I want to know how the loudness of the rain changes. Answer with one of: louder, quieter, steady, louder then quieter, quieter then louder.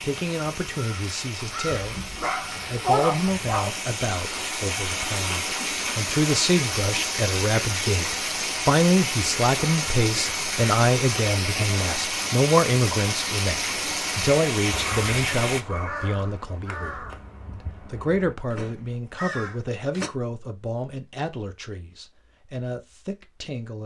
louder.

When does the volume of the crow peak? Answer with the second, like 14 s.
3 s.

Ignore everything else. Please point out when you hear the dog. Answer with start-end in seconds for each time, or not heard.
1.8-3.8.